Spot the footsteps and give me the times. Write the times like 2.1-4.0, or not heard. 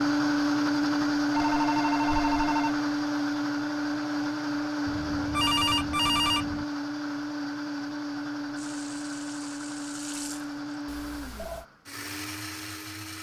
not heard.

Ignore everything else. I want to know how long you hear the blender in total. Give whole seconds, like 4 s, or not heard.
13 s.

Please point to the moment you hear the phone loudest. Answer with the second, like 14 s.
6 s.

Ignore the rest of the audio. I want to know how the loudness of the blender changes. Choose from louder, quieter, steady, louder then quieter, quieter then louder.
quieter.